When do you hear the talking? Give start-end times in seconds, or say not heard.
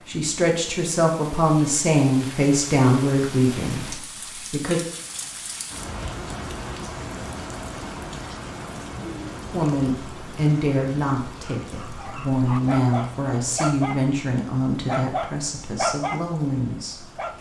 0.1-4.8, 9.5-17.1.